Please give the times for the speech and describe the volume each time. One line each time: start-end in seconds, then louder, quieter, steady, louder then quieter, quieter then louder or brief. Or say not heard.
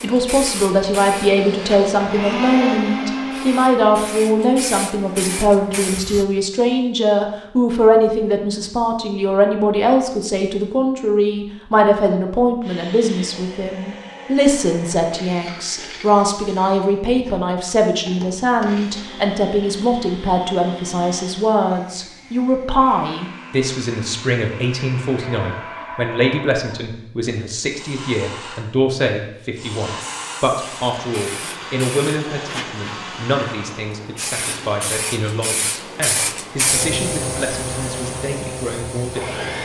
0.0-39.4 quieter.